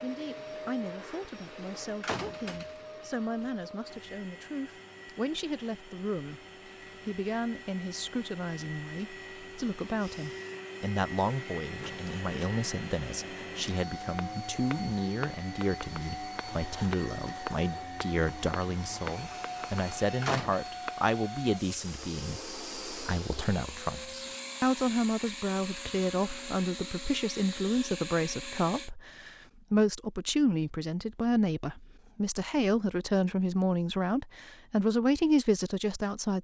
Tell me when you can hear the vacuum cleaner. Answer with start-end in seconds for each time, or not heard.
0.0-28.9.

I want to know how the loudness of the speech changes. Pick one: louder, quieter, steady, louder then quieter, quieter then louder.
louder.